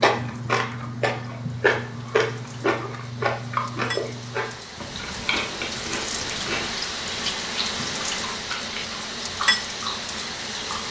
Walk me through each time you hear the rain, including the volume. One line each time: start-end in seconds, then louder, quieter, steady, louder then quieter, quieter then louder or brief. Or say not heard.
0.1-10.8 louder.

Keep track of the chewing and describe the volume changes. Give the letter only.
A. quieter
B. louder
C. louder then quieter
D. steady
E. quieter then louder
A.